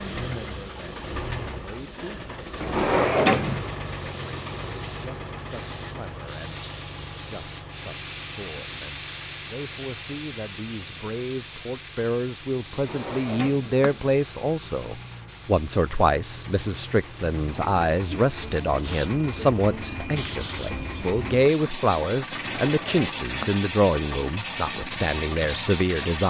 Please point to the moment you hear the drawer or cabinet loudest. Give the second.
3 s.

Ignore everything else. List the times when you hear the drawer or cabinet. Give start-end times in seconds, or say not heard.
2.6-3.6, 12.8-14.1, 22.3-23.6.